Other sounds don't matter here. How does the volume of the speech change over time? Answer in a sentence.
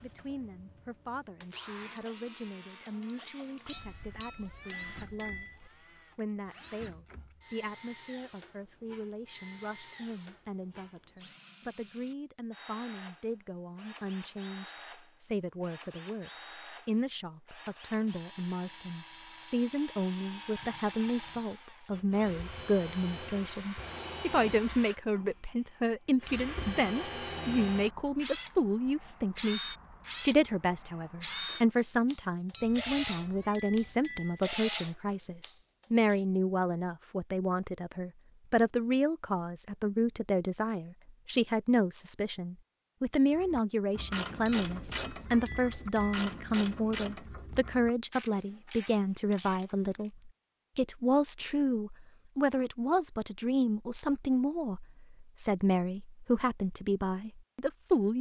The loudness of the speech goes up.